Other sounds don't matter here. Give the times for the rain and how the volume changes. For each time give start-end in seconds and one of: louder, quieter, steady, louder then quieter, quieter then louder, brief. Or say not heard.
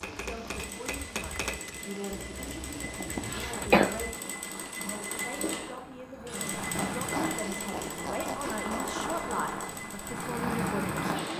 0.0-11.3 louder.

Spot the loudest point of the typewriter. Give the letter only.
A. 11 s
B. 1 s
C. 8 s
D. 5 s
B.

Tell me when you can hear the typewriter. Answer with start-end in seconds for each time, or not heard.
0.0-1.8.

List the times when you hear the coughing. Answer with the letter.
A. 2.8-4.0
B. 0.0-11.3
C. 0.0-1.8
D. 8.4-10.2
A.